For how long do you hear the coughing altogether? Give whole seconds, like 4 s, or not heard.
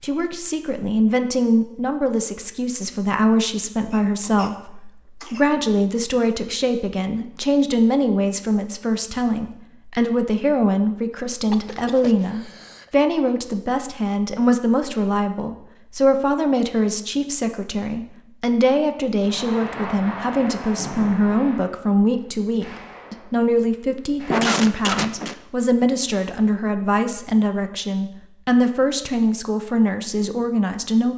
4 s.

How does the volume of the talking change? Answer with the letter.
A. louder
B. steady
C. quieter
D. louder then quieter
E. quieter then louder
B.